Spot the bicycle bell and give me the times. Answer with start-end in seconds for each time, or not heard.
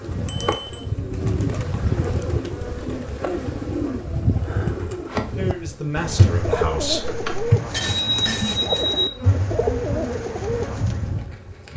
0.2-0.8, 7.0-9.1.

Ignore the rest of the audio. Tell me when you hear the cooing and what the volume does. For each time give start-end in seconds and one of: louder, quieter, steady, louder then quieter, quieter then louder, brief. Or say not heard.
0.0-11.1 steady.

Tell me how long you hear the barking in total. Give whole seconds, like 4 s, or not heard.
not heard.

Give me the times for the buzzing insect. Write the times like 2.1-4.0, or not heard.
0.0-11.7.